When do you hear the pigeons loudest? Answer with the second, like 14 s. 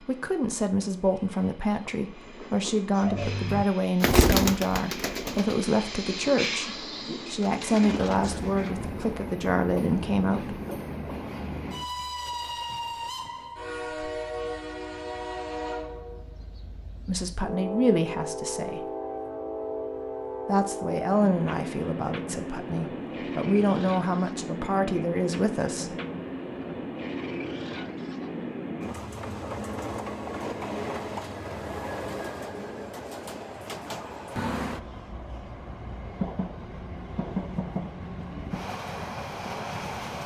4 s.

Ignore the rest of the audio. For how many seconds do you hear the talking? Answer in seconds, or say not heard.
18 s.